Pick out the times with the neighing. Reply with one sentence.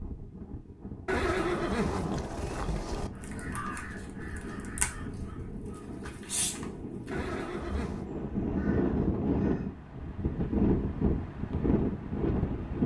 You can hear the neighing from 1.1 to 3.1 s and from 7.1 to 8.1 s.